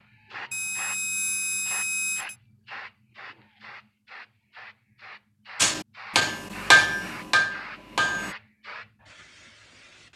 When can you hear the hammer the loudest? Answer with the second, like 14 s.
7 s.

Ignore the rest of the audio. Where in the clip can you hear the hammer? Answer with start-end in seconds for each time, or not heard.
5.6-8.3.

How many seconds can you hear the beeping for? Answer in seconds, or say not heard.
2 s.